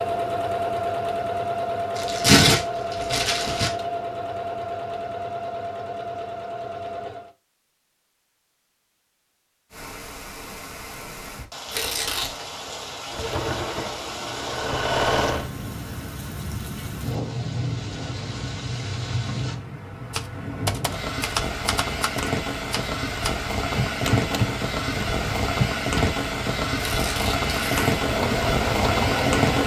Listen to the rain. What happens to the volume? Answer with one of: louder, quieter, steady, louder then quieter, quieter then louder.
louder.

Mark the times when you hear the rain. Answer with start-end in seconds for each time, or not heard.
9.7-29.6.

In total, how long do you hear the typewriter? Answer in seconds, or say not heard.
6 s.